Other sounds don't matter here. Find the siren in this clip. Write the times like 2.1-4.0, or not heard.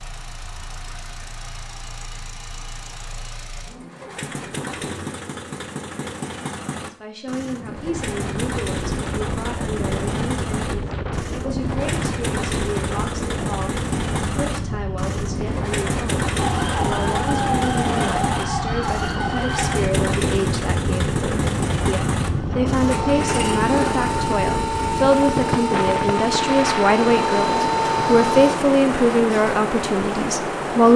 16.3-28.6.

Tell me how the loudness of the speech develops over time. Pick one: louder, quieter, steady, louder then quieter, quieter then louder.
louder.